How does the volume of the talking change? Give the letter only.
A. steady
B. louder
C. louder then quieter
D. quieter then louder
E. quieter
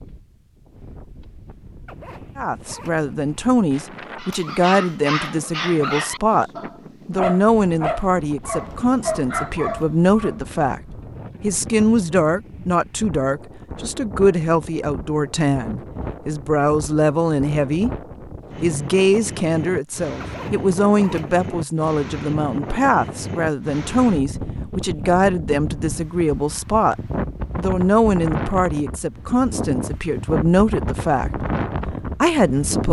A.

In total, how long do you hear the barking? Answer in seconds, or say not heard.
6 s.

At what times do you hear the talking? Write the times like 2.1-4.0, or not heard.
2.4-10.8, 11.4-17.9, 18.6-26.9, 27.6-32.8.